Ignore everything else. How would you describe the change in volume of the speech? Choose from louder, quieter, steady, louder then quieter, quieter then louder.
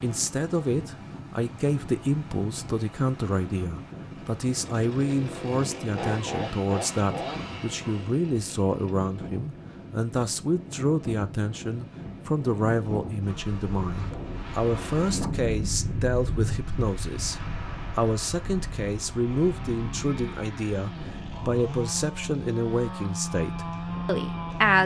steady.